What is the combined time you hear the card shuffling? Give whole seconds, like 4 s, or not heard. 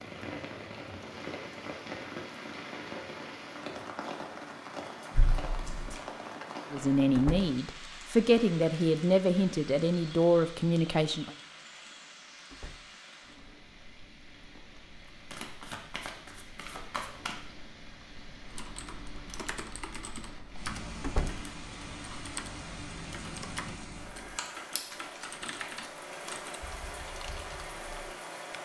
5 s.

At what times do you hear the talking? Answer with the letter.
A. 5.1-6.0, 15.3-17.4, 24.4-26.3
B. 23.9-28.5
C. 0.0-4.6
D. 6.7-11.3
D.